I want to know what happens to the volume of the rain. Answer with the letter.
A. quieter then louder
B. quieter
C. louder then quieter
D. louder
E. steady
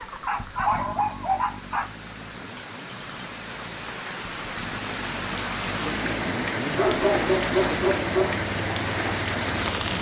D.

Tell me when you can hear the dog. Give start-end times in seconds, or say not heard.
0.2-1.9, 6.8-8.4.